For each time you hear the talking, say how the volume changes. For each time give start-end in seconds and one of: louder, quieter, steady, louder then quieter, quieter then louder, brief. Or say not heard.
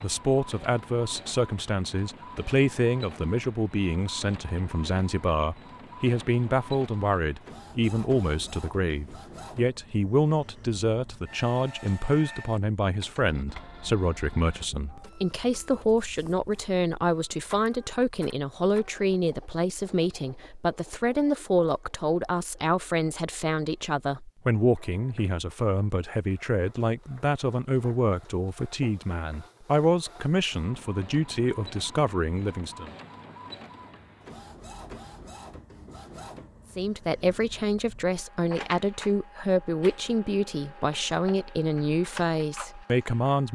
0.0-32.9 steady
36.8-43.4 steady.